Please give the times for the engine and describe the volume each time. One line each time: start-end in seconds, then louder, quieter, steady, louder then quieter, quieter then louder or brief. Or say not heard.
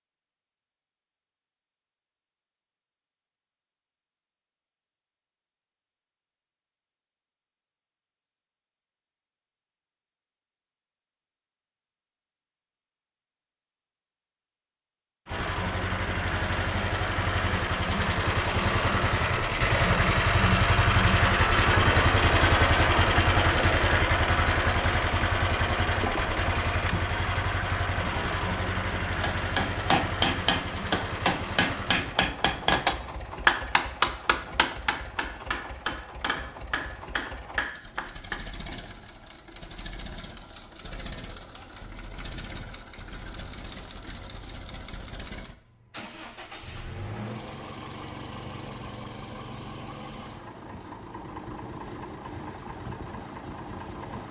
15.2-54.2 quieter.